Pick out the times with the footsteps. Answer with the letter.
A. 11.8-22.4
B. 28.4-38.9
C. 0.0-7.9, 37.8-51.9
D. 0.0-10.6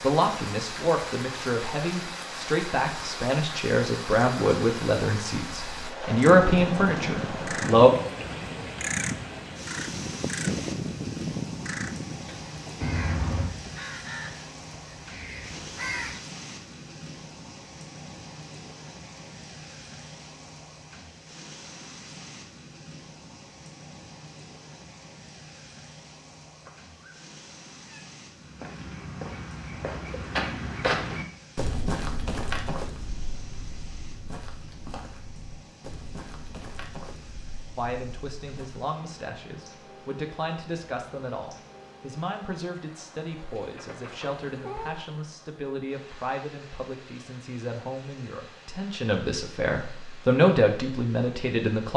B.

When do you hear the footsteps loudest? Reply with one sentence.
The volume of the footsteps peaks at 31 seconds.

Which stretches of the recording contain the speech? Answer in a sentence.
You can hear the speech from 0.0 to 7.9 s and from 37.8 to 51.9 s.